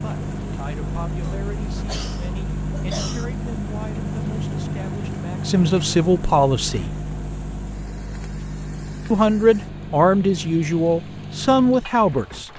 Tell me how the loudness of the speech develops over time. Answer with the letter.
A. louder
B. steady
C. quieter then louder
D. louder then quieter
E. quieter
A.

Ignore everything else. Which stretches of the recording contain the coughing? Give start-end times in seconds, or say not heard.
1.2-3.3.